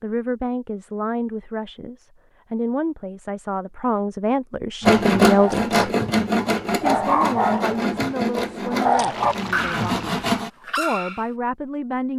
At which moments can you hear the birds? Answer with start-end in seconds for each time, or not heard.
not heard.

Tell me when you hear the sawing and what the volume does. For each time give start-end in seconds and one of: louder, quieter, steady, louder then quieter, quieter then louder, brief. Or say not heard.
4.8-10.5 quieter.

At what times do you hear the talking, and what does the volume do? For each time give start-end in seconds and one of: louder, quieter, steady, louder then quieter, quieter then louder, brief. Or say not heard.
0.0-5.8 quieter then louder
6.8-12.1 quieter then louder.